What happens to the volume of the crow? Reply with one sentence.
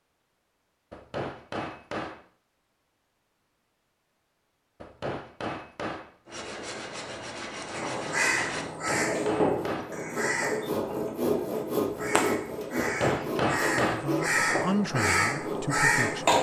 The loudness of the crow goes down, then up.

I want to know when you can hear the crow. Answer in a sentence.
The crow can be heard from 7.7 to 16.3 s.